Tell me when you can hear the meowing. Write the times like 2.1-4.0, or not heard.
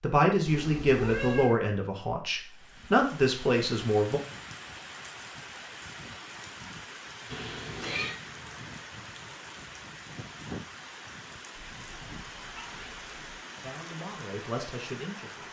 0.5-1.6, 7.3-8.2, 11.6-13.4.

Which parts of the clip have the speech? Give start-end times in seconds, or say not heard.
0.0-4.2, 13.6-15.4.